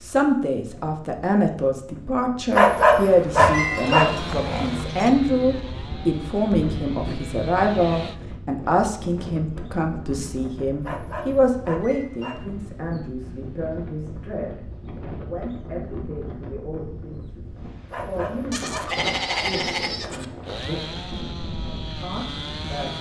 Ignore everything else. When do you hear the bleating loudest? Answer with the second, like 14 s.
19 s.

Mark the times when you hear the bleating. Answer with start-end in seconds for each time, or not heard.
3.4-5.2, 18.5-20.2.